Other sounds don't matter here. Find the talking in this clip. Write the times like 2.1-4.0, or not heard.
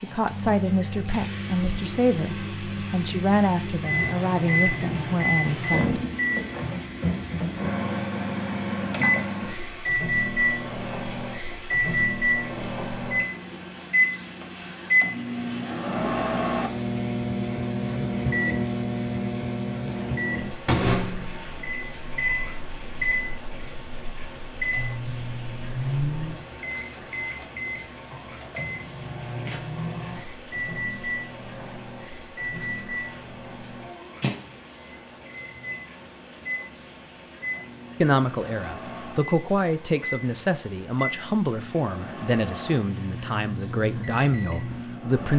0.0-6.0, 38.0-45.3.